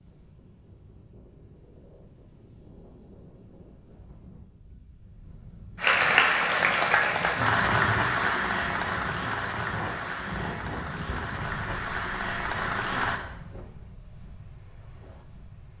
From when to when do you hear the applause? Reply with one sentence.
You can hear the applause from 5.8 to 13.2 s.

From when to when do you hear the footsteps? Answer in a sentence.
You can't hear the footsteps here.